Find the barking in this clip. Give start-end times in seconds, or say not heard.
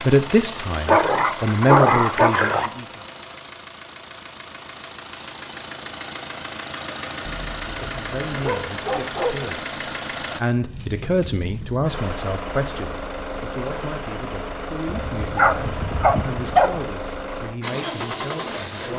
0.8-2.7, 7.2-9.6, 14.8-16.8.